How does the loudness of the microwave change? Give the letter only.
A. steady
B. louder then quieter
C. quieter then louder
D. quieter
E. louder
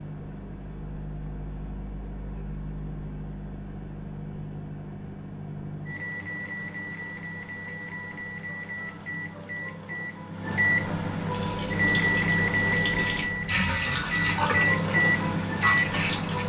E.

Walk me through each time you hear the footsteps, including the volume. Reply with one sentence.
You can't hear the footsteps here.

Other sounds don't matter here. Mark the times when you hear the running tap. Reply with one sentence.
You can hear the running tap from 11.3 to 16.4 s.